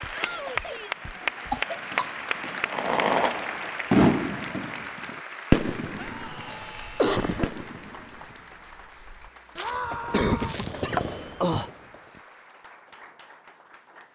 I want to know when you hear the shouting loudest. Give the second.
10 s.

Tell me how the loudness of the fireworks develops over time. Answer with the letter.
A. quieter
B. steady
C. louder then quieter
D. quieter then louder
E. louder
D.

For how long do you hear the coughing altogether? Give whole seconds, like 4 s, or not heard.
6 s.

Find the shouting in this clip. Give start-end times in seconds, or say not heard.
0.1-1.0, 6.0-7.5, 9.6-10.6.